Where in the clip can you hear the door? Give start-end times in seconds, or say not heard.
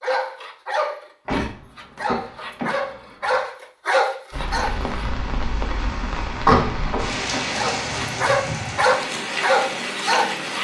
1.2-3.4, 6.3-7.5.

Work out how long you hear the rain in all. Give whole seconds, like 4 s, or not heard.
6 s.